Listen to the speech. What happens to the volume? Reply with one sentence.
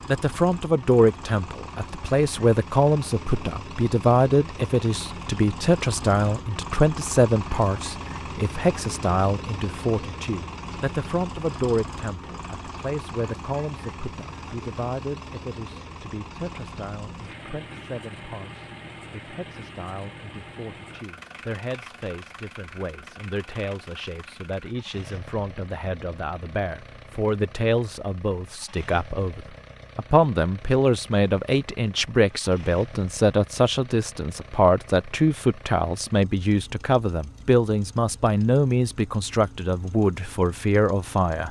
The loudness of the speech goes down, then up.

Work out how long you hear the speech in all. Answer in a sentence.
The speech can be heard for 41 seconds in total.